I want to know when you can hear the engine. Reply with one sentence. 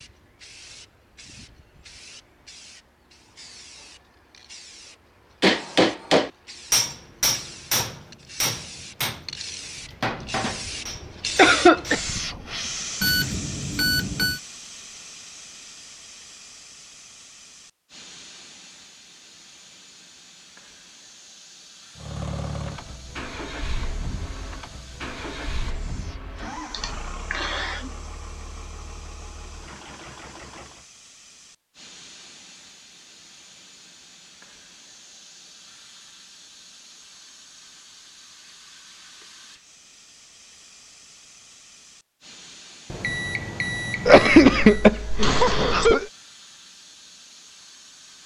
The engine can be heard from 21.9 to 30.9 s.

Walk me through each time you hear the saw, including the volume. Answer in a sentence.
The saw can't be heard in this clip.